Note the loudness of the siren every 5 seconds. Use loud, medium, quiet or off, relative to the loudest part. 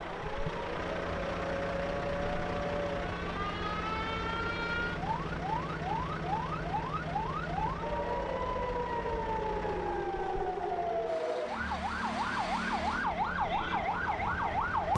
medium, loud, loud.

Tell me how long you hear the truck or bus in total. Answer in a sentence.
The truck or bus can be heard for 15 seconds in total.